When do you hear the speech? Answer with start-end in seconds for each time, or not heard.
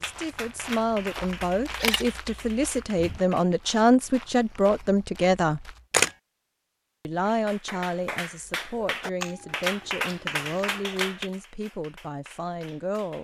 0.0-5.8, 7.0-13.1.